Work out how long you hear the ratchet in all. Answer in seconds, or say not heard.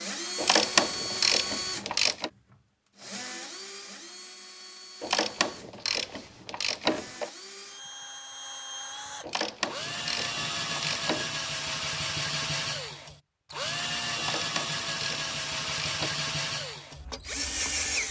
8 s.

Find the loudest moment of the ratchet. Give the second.
1 s.